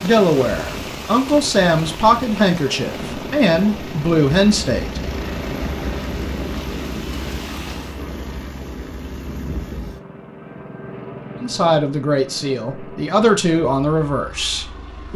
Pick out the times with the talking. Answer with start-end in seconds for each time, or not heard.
0.0-5.0, 11.4-15.1.